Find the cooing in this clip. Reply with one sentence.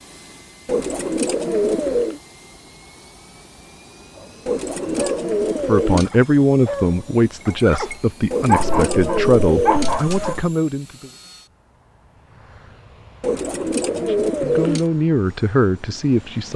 The cooing can be heard from 0.7 to 2.2 s, from 4.5 to 6.1 s, from 8.3 to 10.4 s and from 13.2 to 14.8 s.